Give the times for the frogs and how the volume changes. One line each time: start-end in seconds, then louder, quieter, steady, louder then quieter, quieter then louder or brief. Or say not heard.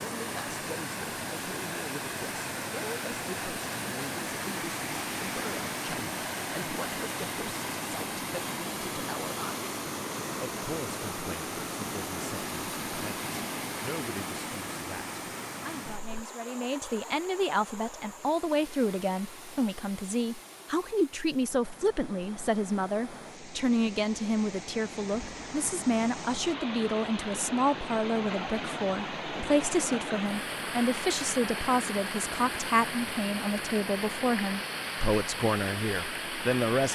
not heard.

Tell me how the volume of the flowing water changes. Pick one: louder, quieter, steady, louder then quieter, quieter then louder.
quieter then louder.